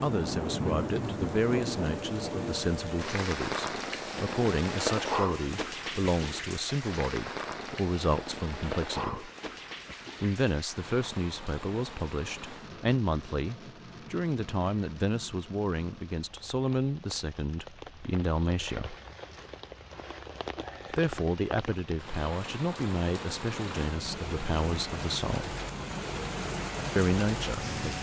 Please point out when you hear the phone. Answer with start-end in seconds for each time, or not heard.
not heard.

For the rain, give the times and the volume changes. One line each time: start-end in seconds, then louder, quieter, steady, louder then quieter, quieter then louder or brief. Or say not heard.
0.0-27.9 quieter then louder.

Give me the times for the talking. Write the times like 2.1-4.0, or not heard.
0.0-9.3, 10.2-18.9, 20.9-25.6, 26.9-27.9.